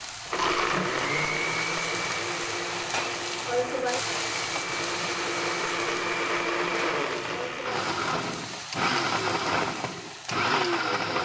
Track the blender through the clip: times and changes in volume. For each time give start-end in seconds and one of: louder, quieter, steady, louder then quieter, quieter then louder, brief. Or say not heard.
0.0-11.2 quieter then louder.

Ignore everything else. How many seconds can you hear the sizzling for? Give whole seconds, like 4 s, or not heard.
11 s.